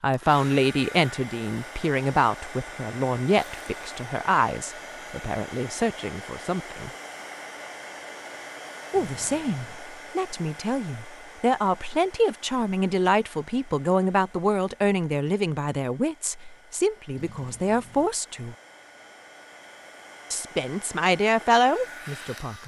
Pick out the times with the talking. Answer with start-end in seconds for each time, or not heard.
0.0-6.9, 8.9-18.6, 20.3-22.6.